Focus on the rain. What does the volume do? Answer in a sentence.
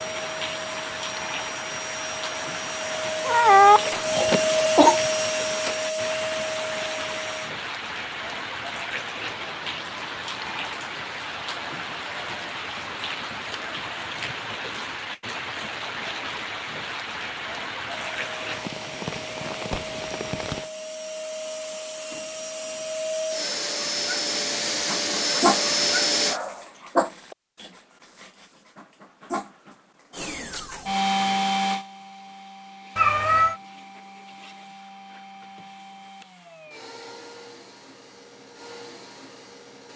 The loudness of the rain stays about the same.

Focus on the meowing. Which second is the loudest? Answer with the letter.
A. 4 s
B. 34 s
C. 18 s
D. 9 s
A.